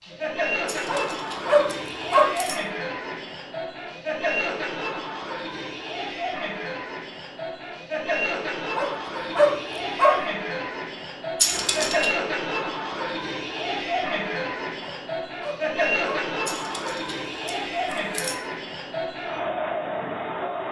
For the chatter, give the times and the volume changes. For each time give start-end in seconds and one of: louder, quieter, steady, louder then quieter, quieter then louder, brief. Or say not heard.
0.0-20.6 steady.